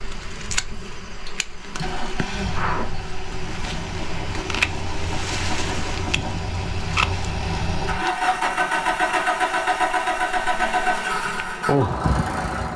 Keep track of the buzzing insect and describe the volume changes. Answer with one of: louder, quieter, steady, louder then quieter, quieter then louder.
quieter then louder.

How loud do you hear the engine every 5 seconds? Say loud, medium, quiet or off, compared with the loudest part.
medium, loud, loud.